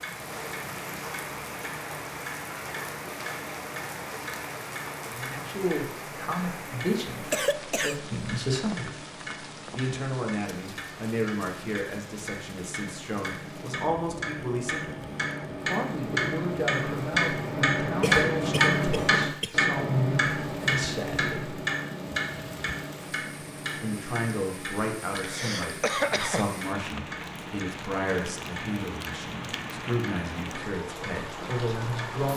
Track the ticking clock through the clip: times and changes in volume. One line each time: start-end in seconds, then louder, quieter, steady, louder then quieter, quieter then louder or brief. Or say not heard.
0.0-32.1 louder then quieter.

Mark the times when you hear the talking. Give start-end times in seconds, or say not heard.
5.0-8.9, 9.7-15.0, 15.7-21.6, 23.8-32.3.